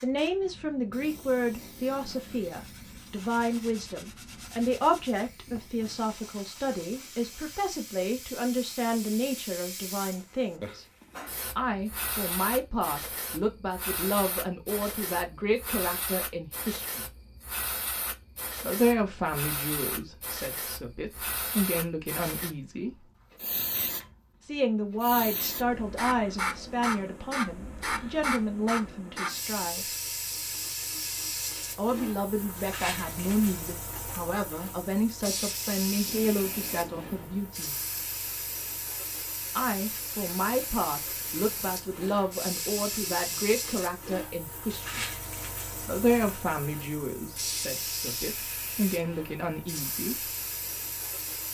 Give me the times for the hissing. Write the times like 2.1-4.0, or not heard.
0.0-51.5.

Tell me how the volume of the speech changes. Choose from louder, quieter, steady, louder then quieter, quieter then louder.
steady.